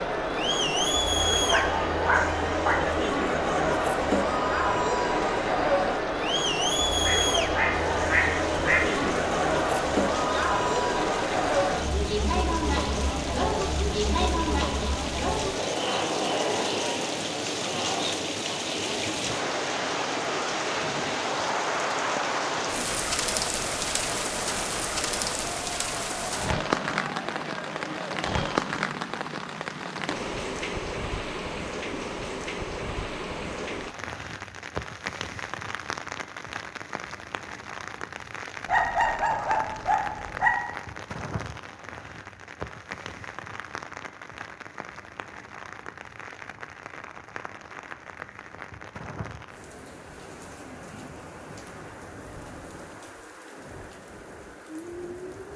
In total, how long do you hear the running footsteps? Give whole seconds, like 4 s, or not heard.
not heard.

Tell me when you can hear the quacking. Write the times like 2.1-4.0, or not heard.
7.0-9.1.